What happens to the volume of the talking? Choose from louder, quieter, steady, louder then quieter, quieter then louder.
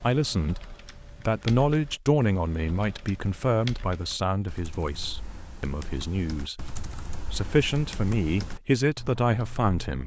quieter then louder.